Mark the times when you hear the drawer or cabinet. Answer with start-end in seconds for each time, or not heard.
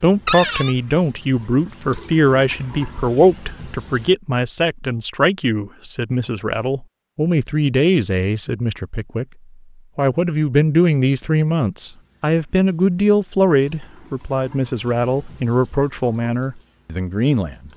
0.2-0.8.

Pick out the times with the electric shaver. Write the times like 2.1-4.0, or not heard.
not heard.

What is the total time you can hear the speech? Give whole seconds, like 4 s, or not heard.
17 s.